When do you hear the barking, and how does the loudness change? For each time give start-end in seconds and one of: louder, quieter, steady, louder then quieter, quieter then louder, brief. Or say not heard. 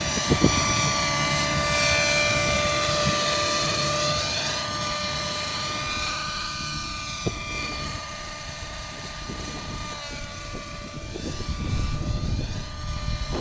not heard.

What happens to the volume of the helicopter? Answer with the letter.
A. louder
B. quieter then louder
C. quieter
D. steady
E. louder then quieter
C.